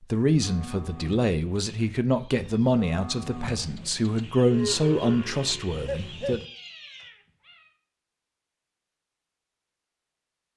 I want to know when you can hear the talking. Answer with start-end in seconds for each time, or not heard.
0.0-6.4.